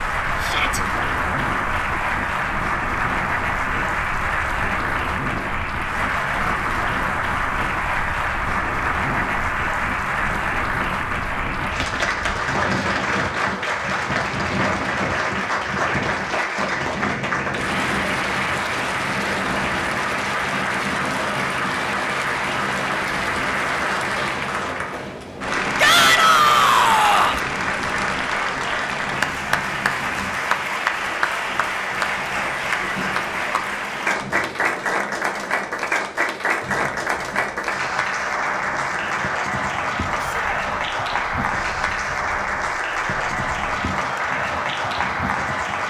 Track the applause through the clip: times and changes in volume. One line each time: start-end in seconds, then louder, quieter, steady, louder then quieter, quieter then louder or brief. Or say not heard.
0.0-45.8 steady.